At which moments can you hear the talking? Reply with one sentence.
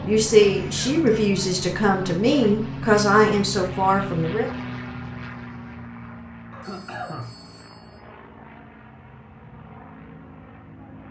You can hear the talking from 0.0 to 4.5 s.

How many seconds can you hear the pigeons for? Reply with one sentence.
The pigeons can't be heard in this clip.